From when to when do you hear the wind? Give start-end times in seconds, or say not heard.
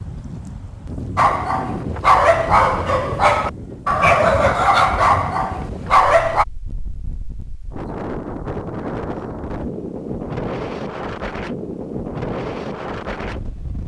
0.0-13.8.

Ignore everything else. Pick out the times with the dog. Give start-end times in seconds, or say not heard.
1.1-6.5.